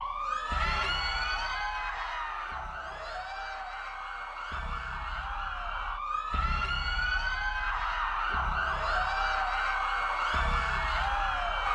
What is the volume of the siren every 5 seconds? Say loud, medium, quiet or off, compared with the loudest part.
medium, loud, loud.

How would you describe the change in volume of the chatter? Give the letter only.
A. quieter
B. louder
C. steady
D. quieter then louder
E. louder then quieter
D.